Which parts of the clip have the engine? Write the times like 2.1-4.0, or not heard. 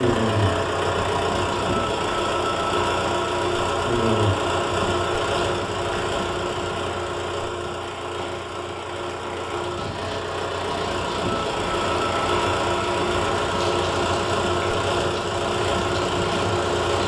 0.0-17.0.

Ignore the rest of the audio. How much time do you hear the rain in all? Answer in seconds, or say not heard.
17 s.